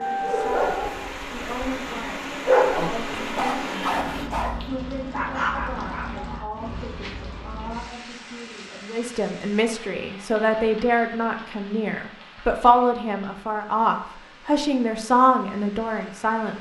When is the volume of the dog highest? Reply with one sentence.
The volume of the dog peaks at 3 seconds.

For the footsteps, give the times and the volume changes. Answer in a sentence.
You can't hear the footsteps here.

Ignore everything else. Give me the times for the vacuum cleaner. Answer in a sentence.
You can hear the vacuum cleaner from 0.0 to 4.2 s.